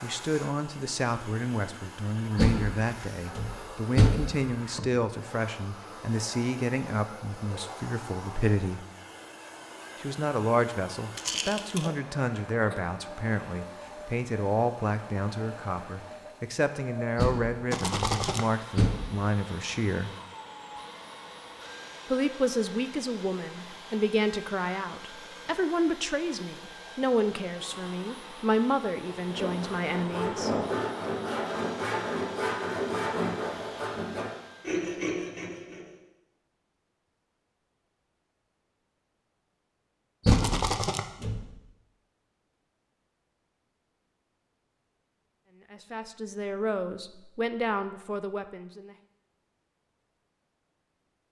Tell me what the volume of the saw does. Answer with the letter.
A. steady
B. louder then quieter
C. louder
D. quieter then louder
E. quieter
A.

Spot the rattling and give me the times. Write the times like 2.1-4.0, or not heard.
11.2-11.9, 17.7-18.4, 40.3-41.0.